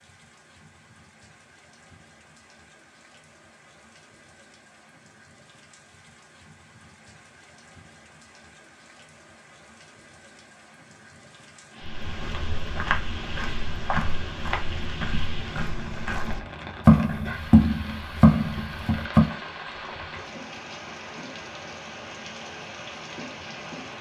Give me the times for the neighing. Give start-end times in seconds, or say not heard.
not heard.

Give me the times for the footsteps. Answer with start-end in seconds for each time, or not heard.
11.8-19.4.